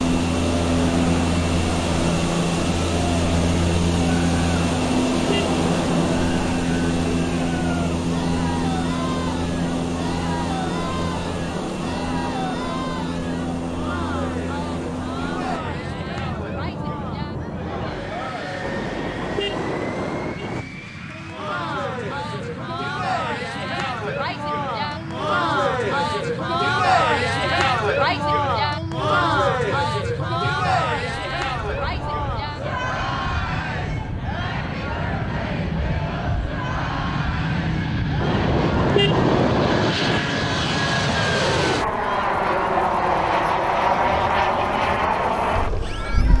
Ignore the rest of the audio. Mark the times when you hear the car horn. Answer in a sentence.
You can hear the car horn from 4.5 to 6.5 s, from 18.6 to 20.6 s and from 38.2 to 40.2 s.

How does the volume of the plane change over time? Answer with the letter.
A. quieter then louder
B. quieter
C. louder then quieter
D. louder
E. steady
A.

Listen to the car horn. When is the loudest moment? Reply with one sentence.
The volume of the car horn peaks at 39 seconds.